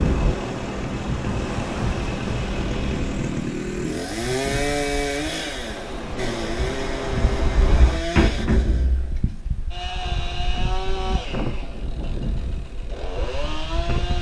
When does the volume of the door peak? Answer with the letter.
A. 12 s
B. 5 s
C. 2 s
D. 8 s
D.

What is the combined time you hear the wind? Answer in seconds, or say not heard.
14 s.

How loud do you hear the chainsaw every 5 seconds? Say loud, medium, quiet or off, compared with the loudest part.
loud, loud, medium.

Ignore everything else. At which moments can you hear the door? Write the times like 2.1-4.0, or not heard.
7.5-9.8.